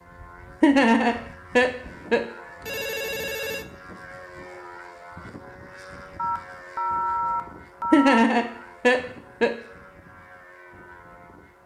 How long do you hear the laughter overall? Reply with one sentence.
You can hear the laughter for 3 seconds altogether.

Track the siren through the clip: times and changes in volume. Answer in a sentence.
You can't hear the siren here.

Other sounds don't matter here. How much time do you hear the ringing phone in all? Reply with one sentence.
You can hear the ringing phone for 3 seconds altogether.